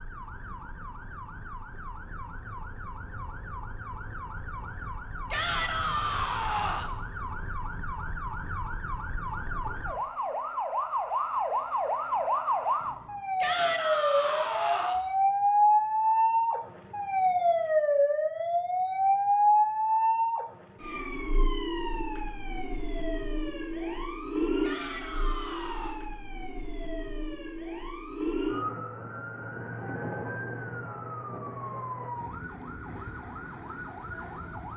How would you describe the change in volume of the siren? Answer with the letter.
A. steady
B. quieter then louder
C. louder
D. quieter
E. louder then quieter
E.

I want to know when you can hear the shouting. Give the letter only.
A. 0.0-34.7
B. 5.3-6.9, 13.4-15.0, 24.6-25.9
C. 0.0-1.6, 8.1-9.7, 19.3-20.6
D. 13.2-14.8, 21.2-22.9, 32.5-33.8
B.